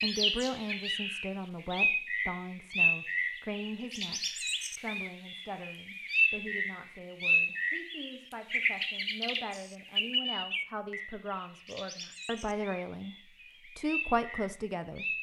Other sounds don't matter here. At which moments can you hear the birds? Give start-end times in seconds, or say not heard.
0.0-15.1.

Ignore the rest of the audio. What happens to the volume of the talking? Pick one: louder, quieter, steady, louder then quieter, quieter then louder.
quieter then louder.